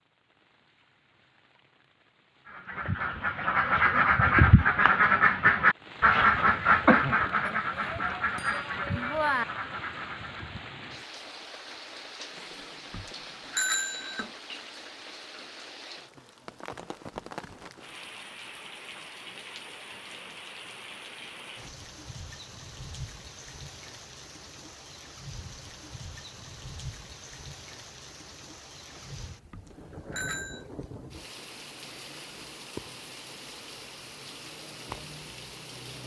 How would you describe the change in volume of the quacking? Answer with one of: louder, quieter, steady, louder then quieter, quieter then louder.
quieter.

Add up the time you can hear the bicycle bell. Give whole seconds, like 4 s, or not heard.
6 s.